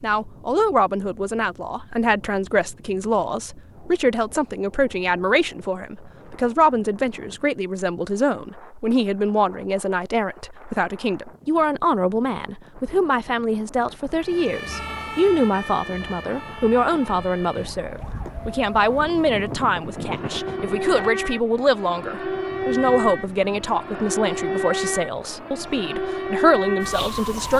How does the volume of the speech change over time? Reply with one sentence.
The loudness of the speech stays about the same.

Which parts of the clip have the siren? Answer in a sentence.
You can hear the siren from 14.2 to 27.5 s.